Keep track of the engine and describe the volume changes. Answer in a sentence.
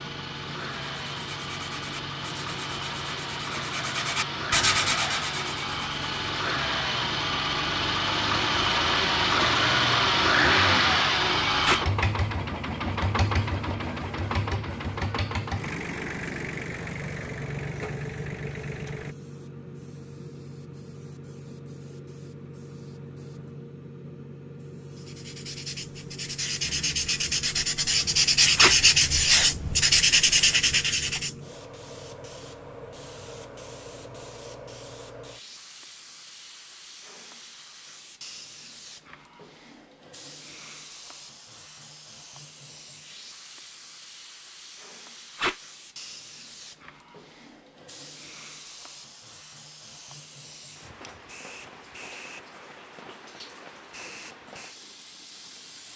The loudness of the engine goes up, then down.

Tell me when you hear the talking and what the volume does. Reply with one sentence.
You can't hear the talking here.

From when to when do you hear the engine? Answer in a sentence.
You can hear the engine from 0.0 to 19.1 s.